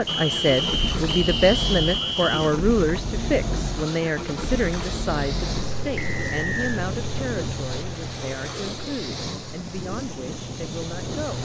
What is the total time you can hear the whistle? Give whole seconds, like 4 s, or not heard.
3 s.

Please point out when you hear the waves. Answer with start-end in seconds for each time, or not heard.
0.0-11.4.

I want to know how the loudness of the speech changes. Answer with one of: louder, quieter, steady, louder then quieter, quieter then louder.
quieter.